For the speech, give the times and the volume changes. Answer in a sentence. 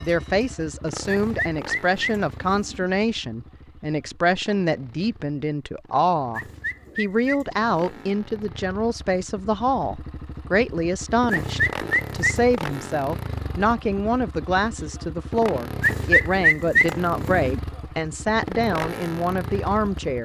You can hear the speech from 0.0 to 20.2 s, at a steady volume.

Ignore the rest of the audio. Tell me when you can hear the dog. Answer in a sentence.
The dog can't be heard in this clip.